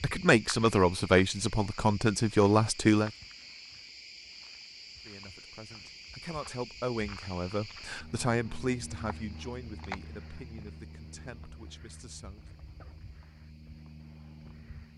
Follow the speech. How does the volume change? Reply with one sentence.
The loudness of the speech goes down.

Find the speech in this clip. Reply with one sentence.
The speech can be heard from 0.0 to 3.1 s and from 5.0 to 12.5 s.